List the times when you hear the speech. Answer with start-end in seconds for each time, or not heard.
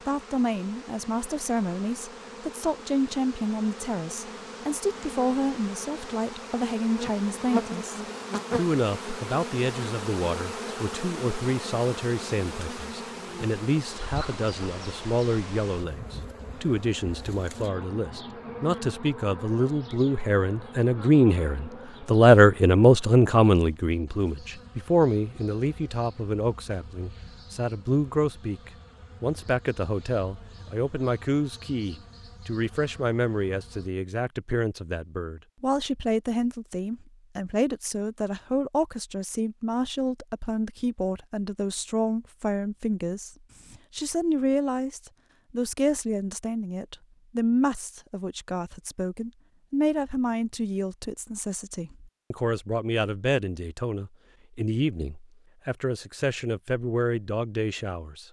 0.1-58.2.